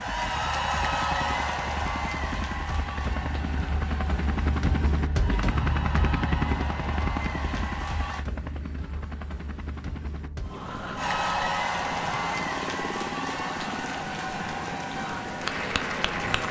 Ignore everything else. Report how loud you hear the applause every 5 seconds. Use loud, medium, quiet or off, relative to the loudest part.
loud, medium, loud, loud.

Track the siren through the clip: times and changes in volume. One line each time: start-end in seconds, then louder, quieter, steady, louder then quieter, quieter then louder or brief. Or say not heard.
not heard.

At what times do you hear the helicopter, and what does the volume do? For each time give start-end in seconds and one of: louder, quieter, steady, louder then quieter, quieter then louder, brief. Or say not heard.
0.0-16.4 louder then quieter.